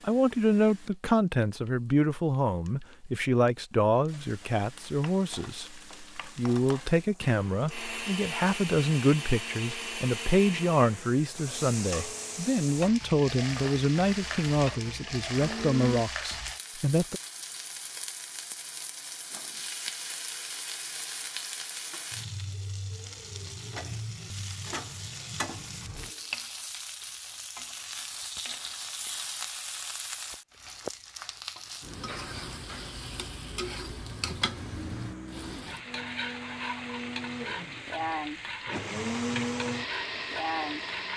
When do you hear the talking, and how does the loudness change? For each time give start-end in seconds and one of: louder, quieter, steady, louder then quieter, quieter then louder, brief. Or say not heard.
0.0-17.2 steady.